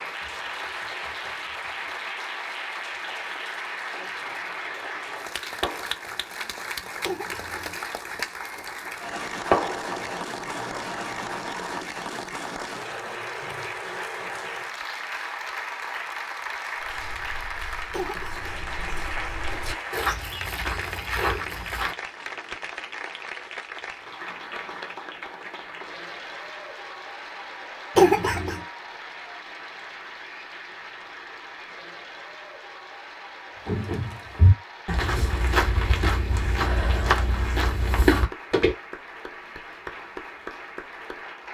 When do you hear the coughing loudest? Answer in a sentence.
The loudest moment of the coughing is at 28 seconds.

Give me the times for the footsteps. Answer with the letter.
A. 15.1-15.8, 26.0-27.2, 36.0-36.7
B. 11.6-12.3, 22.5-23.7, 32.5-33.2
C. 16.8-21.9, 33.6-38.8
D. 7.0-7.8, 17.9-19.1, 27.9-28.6
C.